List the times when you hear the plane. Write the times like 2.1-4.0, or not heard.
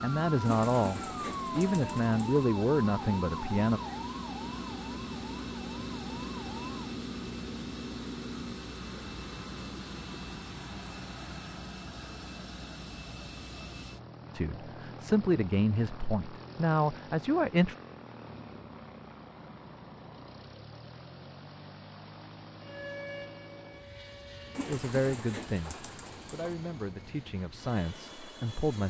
0.0-28.8.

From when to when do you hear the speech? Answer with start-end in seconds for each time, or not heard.
0.0-3.8, 14.3-17.8, 24.6-28.8.